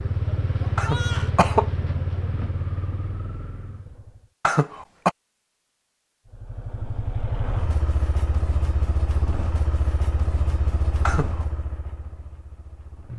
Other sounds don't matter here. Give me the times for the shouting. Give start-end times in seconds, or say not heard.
0.7-1.3.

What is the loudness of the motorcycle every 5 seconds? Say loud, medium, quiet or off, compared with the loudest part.
loud, loud, medium.